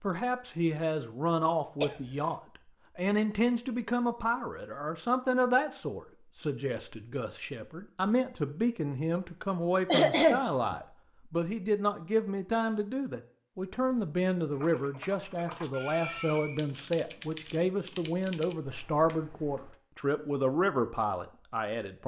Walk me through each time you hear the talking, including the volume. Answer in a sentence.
The talking can be heard from 0.0 to 22.0 s, at a steady volume.